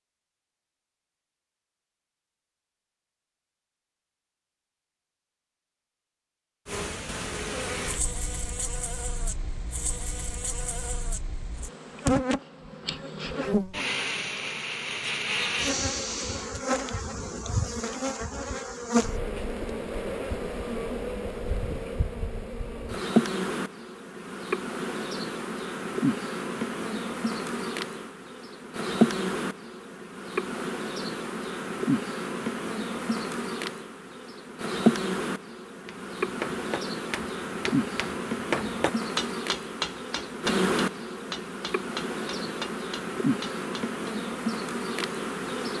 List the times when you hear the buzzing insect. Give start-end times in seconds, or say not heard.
6.7-45.7.